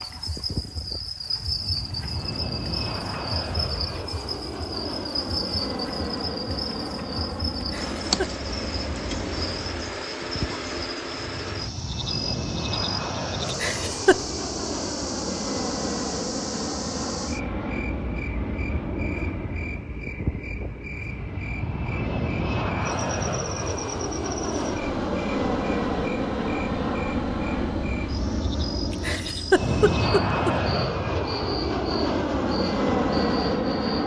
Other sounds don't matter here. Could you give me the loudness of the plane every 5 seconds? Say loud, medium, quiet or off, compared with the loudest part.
medium, medium, medium, medium, medium, loud, loud.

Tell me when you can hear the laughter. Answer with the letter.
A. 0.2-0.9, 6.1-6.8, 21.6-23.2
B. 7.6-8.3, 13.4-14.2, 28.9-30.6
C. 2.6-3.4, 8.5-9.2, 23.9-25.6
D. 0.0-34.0
B.